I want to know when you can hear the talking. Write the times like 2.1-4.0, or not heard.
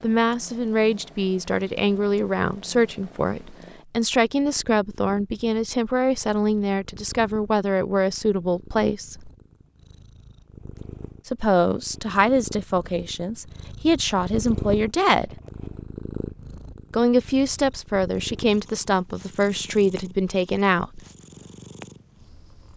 0.0-9.3, 11.2-15.3, 16.9-21.0.